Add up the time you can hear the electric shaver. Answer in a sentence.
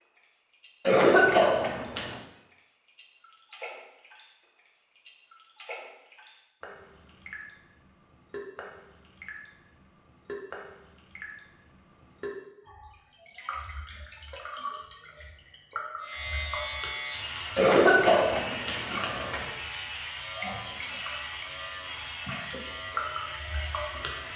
You can hear the electric shaver for 8 seconds altogether.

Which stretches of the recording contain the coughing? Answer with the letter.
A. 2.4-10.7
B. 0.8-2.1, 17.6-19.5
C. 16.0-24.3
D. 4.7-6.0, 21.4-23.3
B.